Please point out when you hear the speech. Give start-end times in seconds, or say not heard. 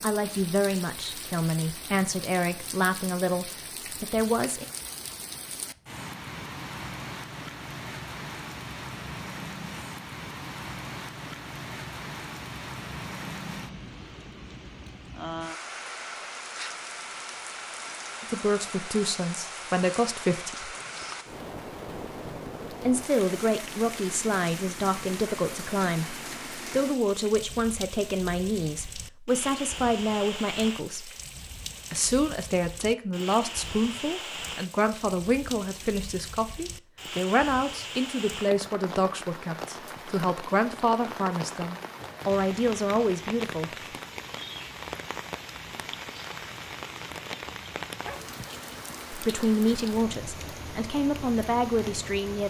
0.0-4.7, 18.2-20.8, 22.9-31.1, 31.9-44.0, 49.1-52.4.